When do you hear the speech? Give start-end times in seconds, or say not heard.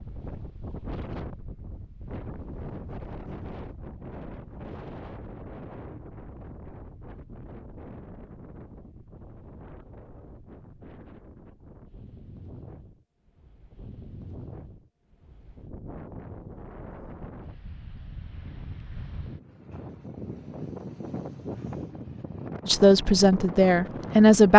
22.6-24.5.